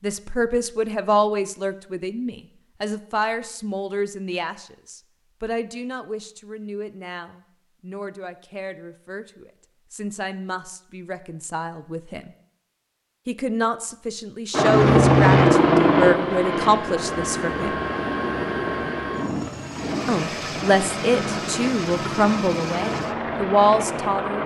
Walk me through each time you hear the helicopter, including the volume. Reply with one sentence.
The helicopter can be heard from 14.5 to 24.4 s, getting quieter.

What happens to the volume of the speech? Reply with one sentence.
The loudness of the speech goes down, then up.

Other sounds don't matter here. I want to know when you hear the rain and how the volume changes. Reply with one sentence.
The rain can't be heard in this clip.